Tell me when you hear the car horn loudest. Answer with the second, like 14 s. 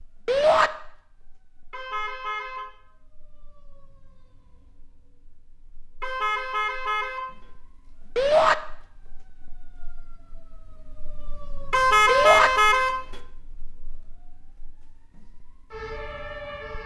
12 s.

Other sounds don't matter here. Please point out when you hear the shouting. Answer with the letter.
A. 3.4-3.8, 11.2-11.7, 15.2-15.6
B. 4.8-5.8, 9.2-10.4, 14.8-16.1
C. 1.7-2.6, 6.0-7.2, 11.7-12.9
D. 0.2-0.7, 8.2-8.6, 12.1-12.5
D.